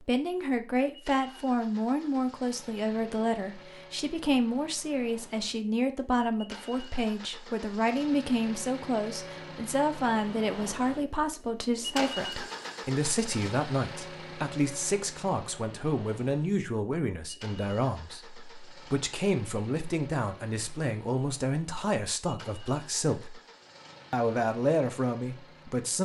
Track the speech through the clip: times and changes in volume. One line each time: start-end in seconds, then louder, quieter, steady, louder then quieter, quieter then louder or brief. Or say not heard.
0.0-23.4 steady
24.1-26.0 brief.